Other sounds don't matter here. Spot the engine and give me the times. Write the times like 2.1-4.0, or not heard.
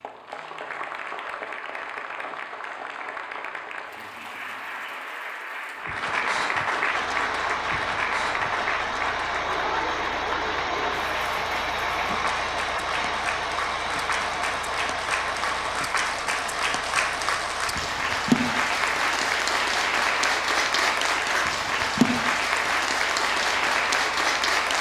6.9-24.7.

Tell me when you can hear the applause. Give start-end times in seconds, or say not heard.
0.0-24.7.